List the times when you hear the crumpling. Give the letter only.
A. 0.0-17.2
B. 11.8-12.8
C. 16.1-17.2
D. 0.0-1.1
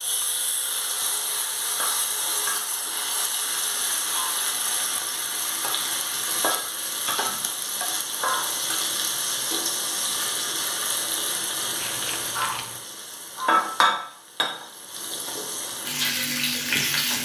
B.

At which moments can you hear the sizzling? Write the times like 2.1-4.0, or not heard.
0.0-17.2.